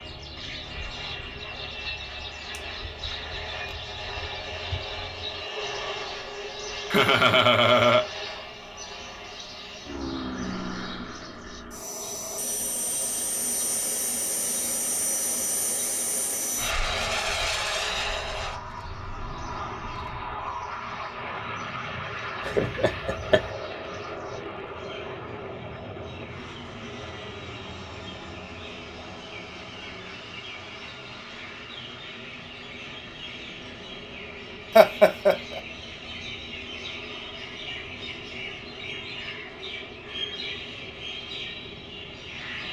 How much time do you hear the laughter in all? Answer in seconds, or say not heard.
3 s.